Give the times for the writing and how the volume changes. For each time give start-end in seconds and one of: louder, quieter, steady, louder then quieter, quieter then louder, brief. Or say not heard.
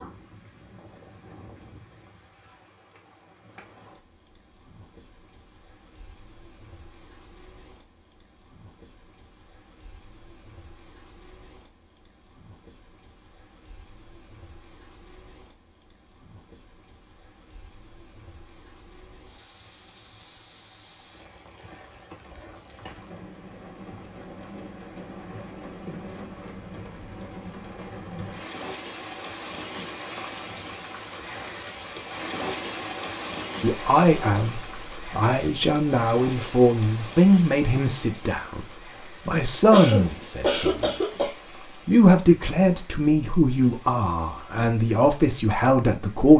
not heard.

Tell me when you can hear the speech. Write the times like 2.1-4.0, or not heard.
33.6-40.9, 41.9-46.3.